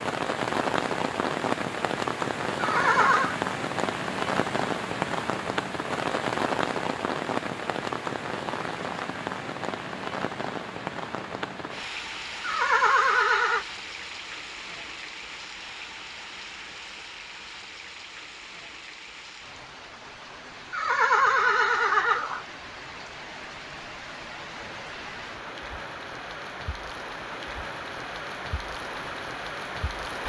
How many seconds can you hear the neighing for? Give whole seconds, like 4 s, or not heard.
4 s.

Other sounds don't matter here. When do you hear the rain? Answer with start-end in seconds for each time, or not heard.
0.0-30.2.